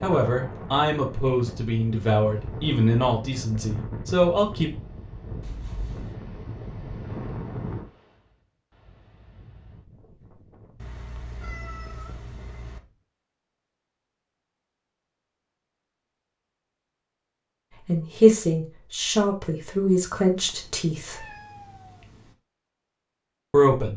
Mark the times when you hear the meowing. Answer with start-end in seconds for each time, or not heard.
5.4-6.2, 10.8-12.8, 20.4-22.4.